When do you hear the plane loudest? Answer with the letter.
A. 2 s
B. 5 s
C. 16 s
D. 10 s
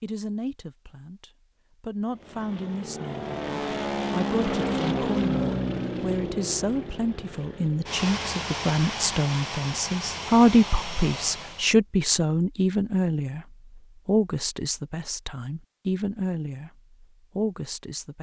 B.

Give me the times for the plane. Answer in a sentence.
The plane can be heard from 2.1 to 11.7 s.